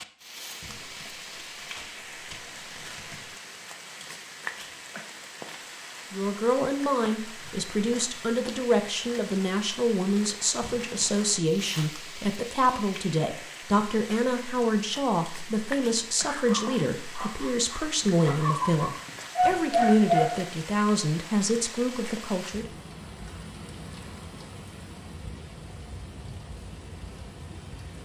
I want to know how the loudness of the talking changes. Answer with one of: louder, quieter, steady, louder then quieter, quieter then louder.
steady.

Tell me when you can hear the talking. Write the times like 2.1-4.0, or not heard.
6.1-22.7.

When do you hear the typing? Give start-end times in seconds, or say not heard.
not heard.